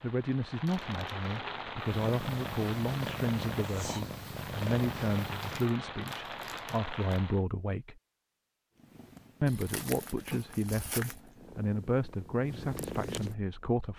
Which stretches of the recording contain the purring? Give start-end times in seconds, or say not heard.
1.8-5.8, 8.8-13.9.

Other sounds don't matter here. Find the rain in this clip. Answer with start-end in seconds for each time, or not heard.
0.0-7.5.